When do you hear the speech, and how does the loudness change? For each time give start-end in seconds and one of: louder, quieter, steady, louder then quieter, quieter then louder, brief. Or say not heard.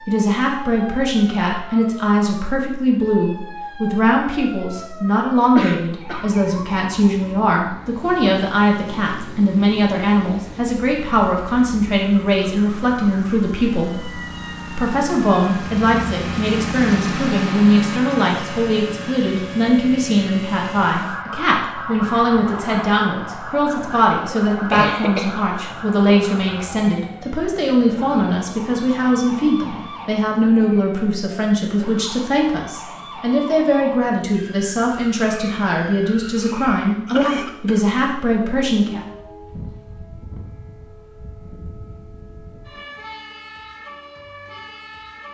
0.1-39.0 steady.